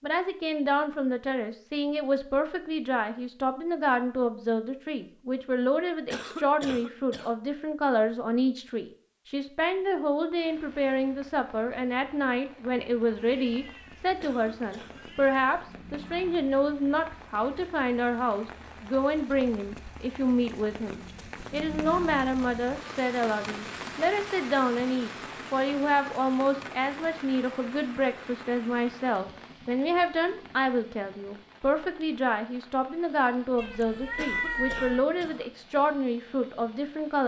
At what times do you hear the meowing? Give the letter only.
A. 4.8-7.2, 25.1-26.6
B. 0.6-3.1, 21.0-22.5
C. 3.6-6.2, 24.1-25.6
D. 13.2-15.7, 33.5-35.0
D.